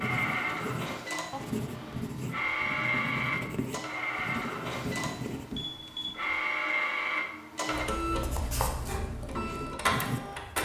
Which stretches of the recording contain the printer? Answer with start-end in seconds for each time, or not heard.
0.0-10.6.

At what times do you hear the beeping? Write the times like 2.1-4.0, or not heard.
1.3-2.1, 5.5-6.3.